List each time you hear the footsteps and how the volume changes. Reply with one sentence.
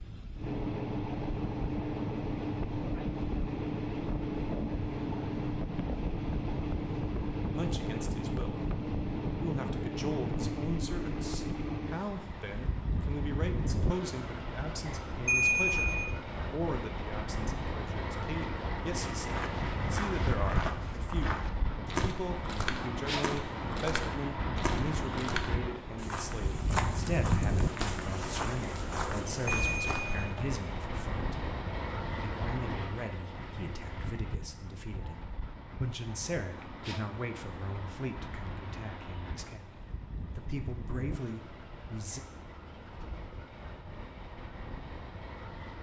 The footsteps can be heard from 19.1 to 30.4 s, at a steady volume.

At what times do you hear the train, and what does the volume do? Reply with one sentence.
The train can be heard from 0.0 to 45.7 s, getting quieter.